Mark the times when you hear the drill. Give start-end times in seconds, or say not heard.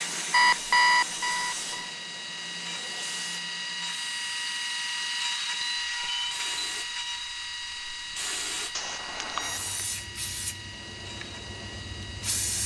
0.1-12.6.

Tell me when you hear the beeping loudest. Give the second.
1 s.